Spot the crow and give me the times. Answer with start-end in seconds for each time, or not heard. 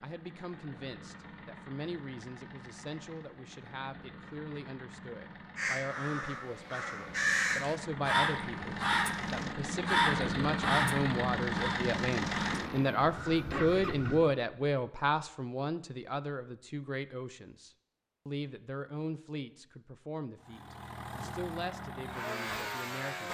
5.5-14.2.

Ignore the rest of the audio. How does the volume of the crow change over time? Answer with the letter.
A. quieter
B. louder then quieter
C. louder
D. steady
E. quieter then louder
A.